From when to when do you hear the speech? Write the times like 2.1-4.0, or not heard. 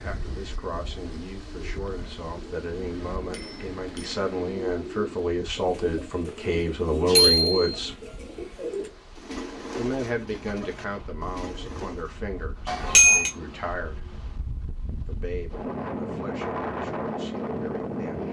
0.0-8.0, 9.8-14.1, 15.1-18.2.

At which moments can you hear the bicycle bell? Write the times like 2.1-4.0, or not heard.
3.3-4.2, 7.2-7.7, 12.7-13.3.